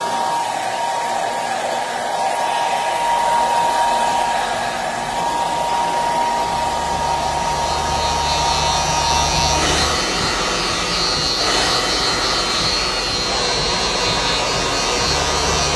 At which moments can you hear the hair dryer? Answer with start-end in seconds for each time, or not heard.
0.0-15.7.